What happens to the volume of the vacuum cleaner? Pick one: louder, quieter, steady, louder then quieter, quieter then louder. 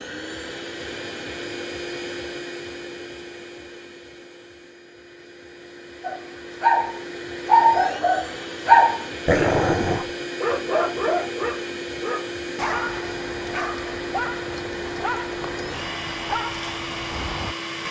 quieter then louder.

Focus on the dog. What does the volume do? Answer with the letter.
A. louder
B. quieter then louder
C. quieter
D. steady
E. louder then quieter
C.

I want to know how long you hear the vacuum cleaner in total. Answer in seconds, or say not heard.
18 s.